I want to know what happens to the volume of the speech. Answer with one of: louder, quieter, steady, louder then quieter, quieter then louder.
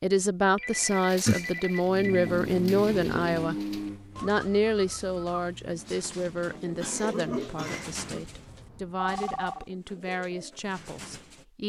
quieter.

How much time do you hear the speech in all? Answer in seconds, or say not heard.
11 s.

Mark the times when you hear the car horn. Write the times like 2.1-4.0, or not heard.
not heard.